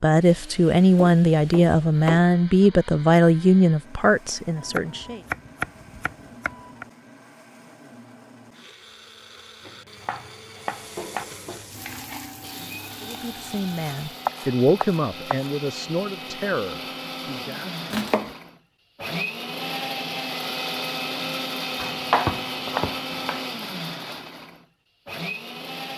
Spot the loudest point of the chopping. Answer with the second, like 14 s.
22 s.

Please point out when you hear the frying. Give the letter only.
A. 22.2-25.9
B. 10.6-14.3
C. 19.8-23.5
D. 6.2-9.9
B.